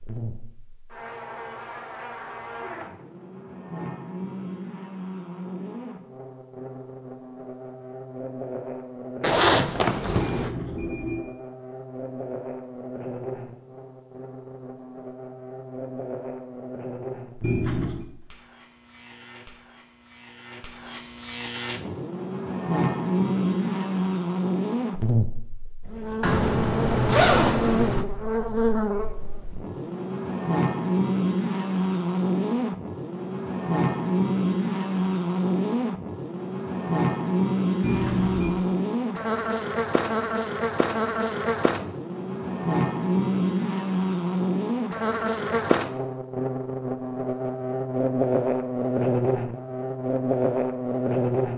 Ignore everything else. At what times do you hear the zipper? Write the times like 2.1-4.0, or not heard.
9.2-10.5, 26.2-28.1.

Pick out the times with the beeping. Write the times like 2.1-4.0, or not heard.
10.2-11.2, 17.4-18.1, 37.8-38.5.